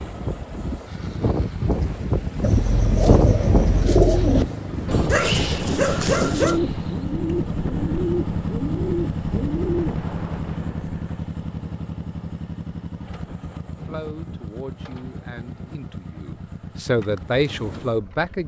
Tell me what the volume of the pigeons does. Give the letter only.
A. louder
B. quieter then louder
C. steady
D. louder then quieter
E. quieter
E.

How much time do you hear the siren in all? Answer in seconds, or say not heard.
not heard.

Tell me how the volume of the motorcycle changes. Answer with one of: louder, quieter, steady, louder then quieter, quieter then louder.
louder then quieter.